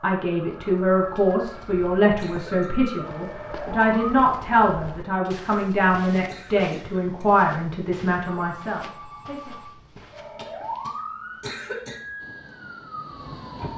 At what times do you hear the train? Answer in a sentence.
The train can be heard from 12.2 to 13.7 s.